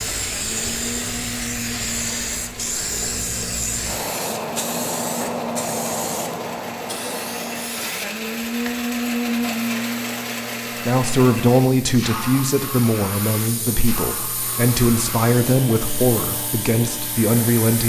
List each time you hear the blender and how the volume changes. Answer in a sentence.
The blender can be heard from 0.0 to 17.8 s, getting louder then quieter.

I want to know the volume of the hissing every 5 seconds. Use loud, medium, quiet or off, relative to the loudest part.
loud, loud, medium, medium.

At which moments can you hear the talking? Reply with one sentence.
You can hear the talking from 10.8 to 17.8 s.